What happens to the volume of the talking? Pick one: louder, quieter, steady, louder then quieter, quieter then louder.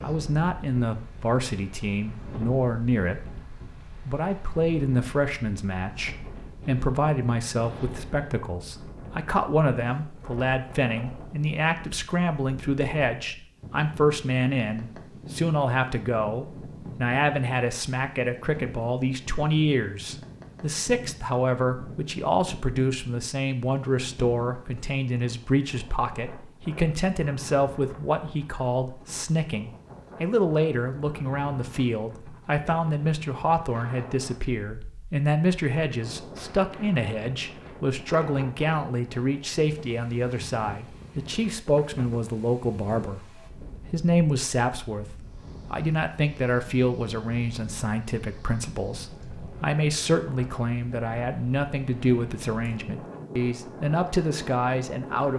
steady.